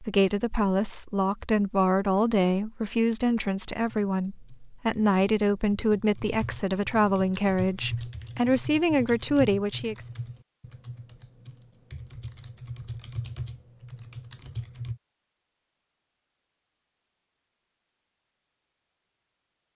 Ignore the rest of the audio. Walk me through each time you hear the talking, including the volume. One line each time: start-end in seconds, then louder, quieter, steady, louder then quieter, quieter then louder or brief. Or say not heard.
0.0-10.1 steady.